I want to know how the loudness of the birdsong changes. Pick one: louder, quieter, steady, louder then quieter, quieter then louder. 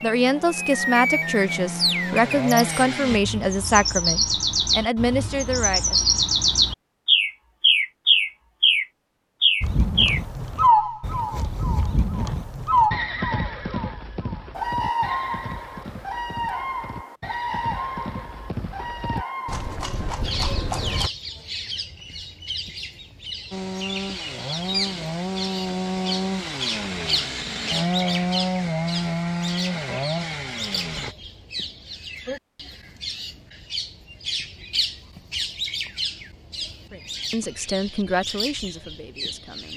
quieter.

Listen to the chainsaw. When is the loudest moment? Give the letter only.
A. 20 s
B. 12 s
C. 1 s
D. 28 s
D.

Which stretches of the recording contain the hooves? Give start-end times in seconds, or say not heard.
9.6-21.1.